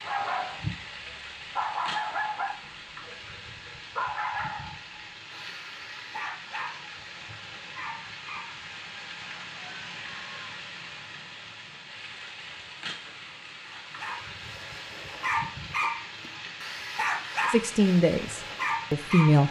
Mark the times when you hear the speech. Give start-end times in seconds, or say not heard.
17.5-19.4.